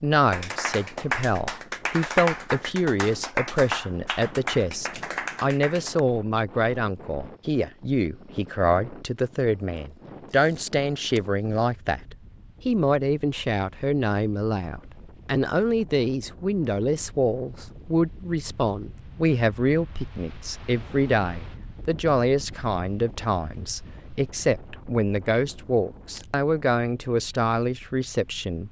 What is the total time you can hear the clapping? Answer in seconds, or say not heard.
6 s.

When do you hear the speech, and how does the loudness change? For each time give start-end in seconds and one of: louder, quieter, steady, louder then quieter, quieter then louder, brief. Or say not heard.
0.0-28.6 steady.